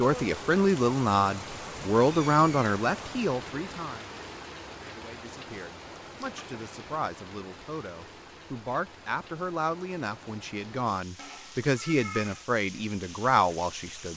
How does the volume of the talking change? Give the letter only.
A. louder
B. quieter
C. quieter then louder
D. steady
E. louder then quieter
C.